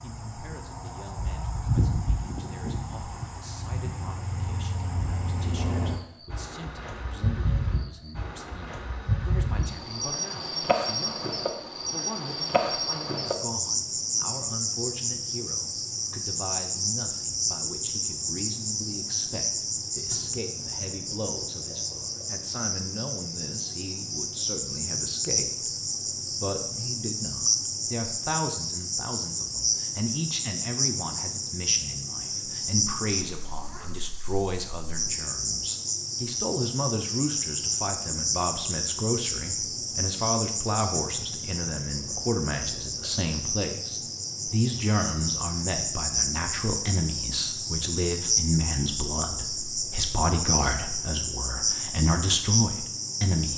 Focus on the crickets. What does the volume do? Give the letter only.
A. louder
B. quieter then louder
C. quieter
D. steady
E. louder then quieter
D.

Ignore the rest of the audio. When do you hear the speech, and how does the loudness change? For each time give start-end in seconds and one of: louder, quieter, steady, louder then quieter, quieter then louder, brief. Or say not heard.
0.0-53.5 louder.